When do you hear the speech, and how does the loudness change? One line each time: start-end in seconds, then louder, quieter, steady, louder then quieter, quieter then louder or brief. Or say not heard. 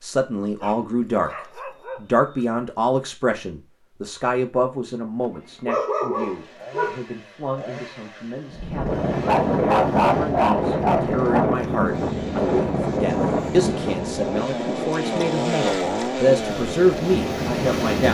0.0-1.3 brief
1.9-18.0 quieter then louder.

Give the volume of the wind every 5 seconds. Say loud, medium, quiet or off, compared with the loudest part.
off, loud, loud, loud.